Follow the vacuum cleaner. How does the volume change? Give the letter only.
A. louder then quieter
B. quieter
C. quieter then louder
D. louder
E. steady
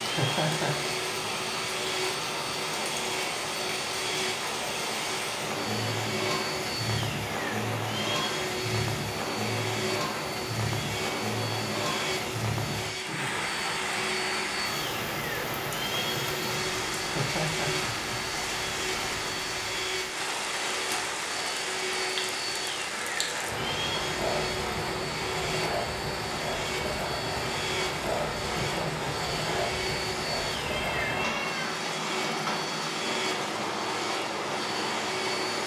E.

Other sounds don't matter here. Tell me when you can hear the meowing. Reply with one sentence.
The meowing can be heard from 30.6 to 31.8 s.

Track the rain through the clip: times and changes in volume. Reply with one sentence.
The rain can be heard from 0.0 to 35.6 s, at a steady volume.